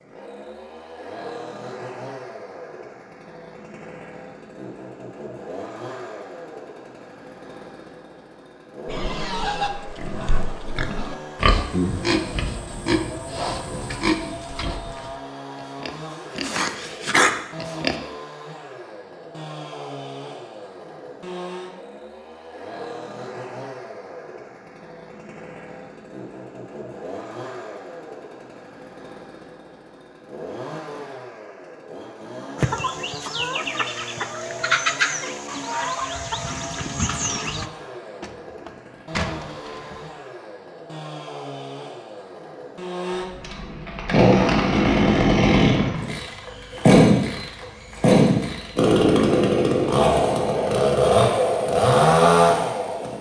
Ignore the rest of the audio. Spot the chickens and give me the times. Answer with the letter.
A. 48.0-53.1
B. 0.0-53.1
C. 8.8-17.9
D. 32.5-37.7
D.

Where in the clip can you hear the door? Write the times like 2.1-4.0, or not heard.
38.2-40.2.